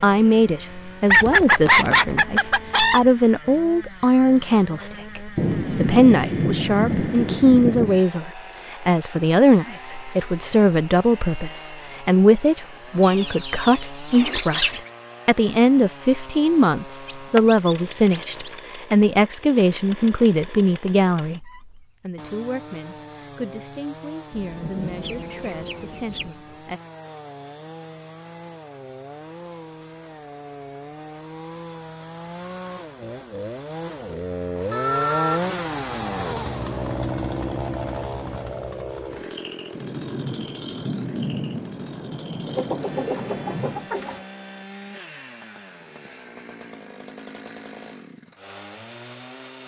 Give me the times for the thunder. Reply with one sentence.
You can hear the thunder from 5.3 to 8.0 s, from 24.3 to 26.3 s and from 39.7 to 43.9 s.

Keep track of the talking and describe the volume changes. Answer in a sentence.
The volume of the talking goes down.